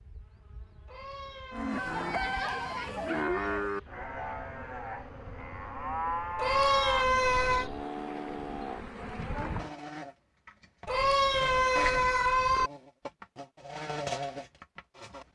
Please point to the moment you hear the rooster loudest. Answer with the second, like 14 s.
2 s.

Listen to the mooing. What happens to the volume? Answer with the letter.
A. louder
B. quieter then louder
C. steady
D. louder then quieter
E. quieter
E.